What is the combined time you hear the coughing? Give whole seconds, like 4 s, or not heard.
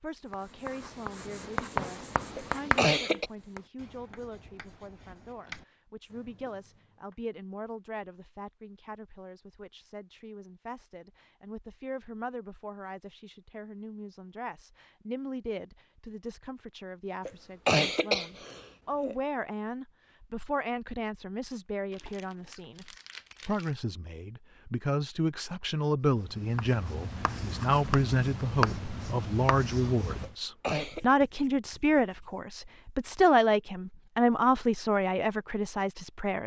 4 s.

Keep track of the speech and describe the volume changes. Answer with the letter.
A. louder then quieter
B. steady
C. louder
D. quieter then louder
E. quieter
C.